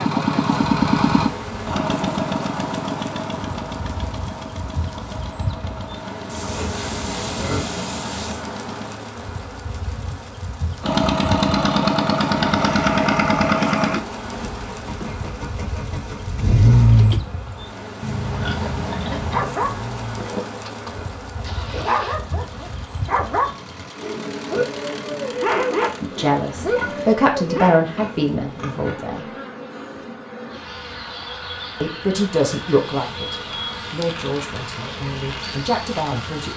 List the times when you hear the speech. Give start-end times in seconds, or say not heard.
26.0-29.2, 31.8-36.5.